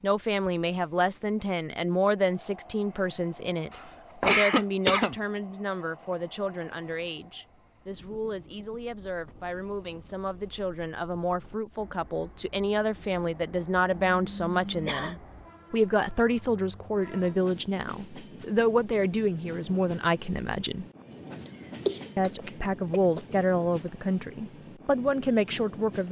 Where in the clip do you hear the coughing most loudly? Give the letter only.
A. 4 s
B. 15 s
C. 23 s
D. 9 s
A.